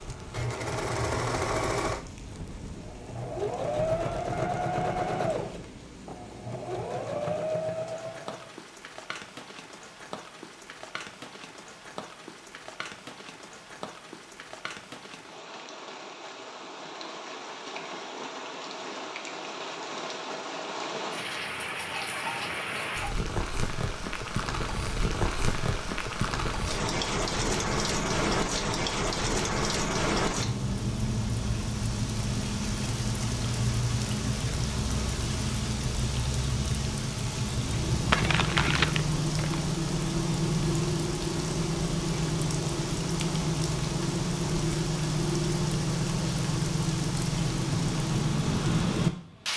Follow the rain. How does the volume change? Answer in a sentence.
The loudness of the rain goes up.